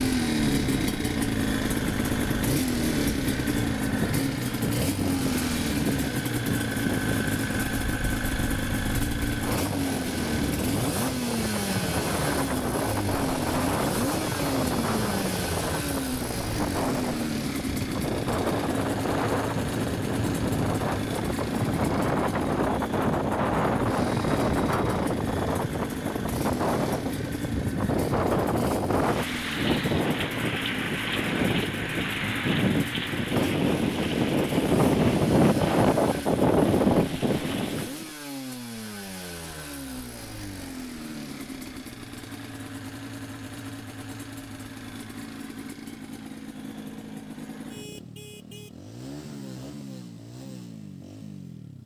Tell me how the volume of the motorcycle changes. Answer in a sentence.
The volume of the motorcycle goes down.